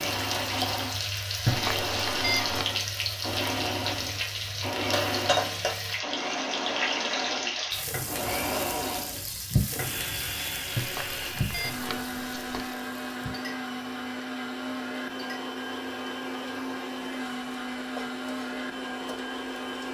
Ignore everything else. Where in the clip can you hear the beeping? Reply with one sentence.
The beeping can be heard from 1.4 to 2.6 s and from 10.8 to 12.8 s.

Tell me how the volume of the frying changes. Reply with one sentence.
The loudness of the frying goes down.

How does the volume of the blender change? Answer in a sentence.
The volume of the blender stays about the same.